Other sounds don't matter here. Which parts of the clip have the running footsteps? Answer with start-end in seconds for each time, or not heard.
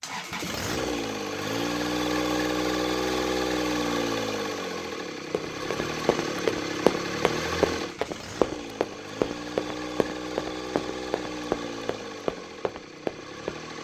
5.3-13.6.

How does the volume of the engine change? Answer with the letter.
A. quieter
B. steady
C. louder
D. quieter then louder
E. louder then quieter
A.